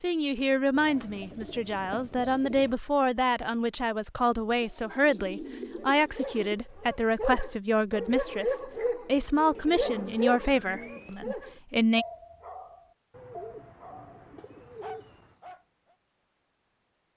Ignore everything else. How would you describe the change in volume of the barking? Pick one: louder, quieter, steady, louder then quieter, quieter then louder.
quieter.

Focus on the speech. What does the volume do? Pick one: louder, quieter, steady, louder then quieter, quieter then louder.
steady.